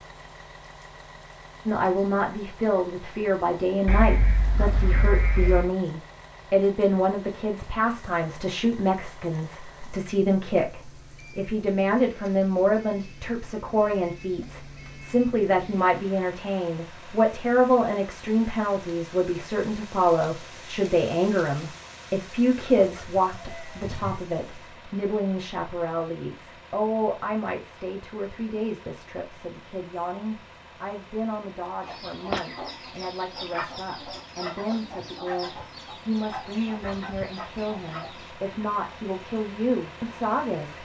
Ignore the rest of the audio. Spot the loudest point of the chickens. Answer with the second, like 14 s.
32 s.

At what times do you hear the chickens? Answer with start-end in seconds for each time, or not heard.
31.8-38.3.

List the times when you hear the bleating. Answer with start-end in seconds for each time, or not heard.
3.9-5.7, 22.9-24.2.